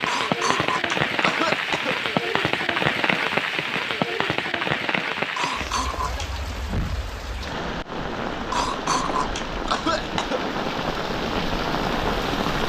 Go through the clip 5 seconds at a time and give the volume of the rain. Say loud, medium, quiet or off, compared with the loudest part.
loud, medium, loud.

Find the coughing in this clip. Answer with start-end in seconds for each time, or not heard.
0.1-1.9, 5.3-6.3, 8.5-10.4.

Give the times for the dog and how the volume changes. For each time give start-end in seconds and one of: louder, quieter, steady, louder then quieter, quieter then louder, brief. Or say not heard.
not heard.